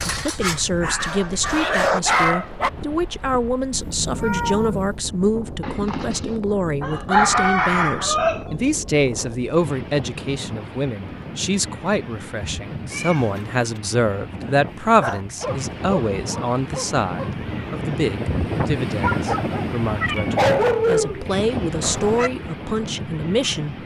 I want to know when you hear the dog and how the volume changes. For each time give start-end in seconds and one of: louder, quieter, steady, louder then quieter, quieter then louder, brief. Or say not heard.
0.0-2.7 brief
14.8-22.3 louder.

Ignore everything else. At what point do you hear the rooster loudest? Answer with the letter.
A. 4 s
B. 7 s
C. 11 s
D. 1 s
B.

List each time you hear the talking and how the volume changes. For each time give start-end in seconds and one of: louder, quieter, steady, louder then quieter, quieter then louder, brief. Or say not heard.
0.1-23.8 steady.